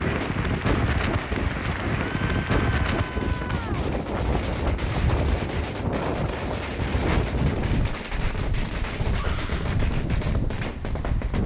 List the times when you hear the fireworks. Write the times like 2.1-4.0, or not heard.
0.0-11.4.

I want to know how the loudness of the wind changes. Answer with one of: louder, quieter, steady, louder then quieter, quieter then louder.
steady.